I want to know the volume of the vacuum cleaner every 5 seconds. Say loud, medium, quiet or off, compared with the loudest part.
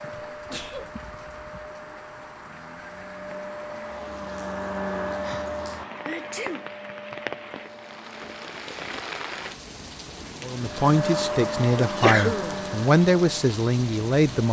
medium, medium, loud.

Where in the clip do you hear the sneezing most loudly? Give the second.
12 s.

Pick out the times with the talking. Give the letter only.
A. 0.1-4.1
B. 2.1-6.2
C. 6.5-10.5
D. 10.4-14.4
D.